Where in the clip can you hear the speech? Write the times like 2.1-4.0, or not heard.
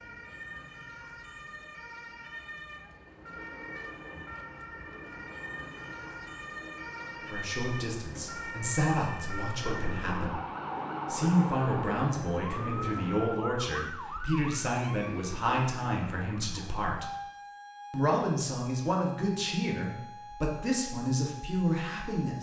7.2-10.4, 11.1-17.1, 17.9-22.3.